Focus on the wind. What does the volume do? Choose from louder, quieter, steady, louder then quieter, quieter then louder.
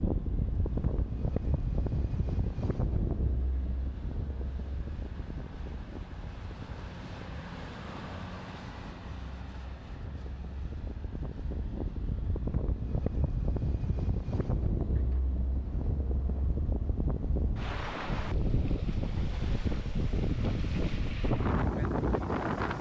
quieter then louder.